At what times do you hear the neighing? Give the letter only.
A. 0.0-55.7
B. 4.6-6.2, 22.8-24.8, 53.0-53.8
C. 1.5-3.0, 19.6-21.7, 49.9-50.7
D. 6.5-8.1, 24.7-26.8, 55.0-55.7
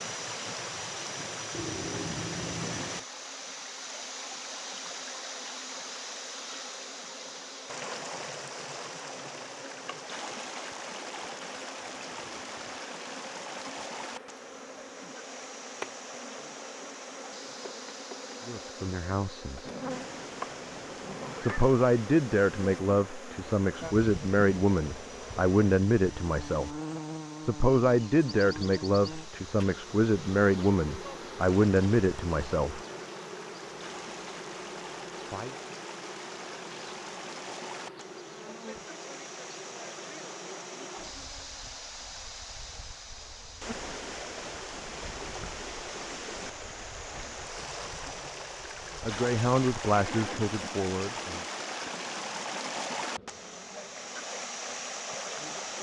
C.